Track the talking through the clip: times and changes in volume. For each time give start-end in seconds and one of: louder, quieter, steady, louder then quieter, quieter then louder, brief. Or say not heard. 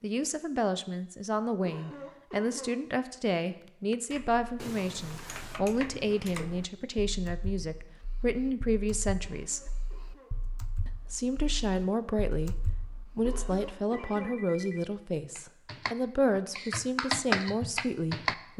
0.0-9.6 steady
10.8-18.5 steady.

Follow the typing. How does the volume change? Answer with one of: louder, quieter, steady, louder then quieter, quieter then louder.
quieter then louder.